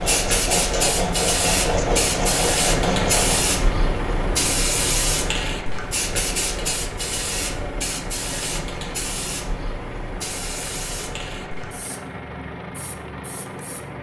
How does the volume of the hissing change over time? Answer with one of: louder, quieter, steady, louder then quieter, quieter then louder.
quieter.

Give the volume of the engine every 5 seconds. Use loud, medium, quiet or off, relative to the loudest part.
loud, medium, medium.